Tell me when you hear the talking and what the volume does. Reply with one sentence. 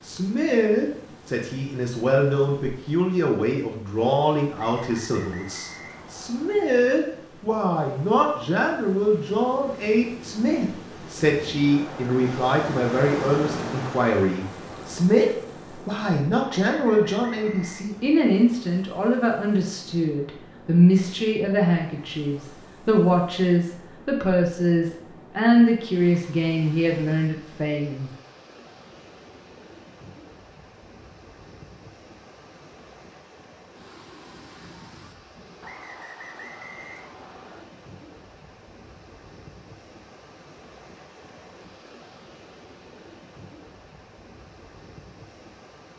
The talking can be heard from 0.0 to 28.1 s, at a steady volume.